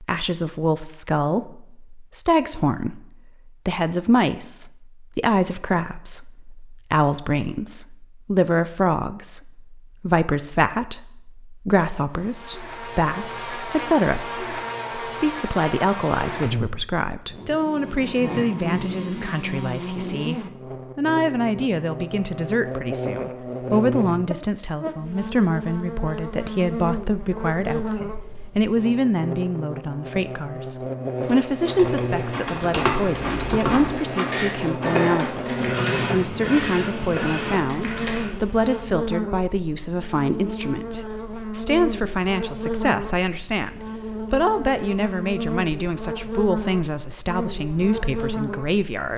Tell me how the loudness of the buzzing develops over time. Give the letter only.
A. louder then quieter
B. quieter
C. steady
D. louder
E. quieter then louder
C.